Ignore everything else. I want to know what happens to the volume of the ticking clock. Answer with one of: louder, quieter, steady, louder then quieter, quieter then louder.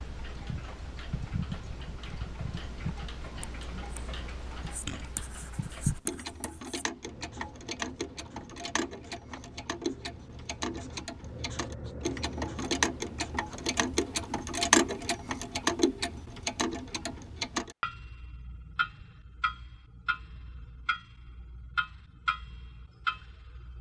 louder then quieter.